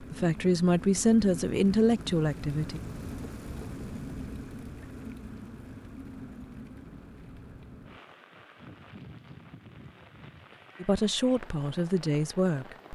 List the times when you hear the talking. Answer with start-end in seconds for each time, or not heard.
0.0-2.8, 10.8-12.9.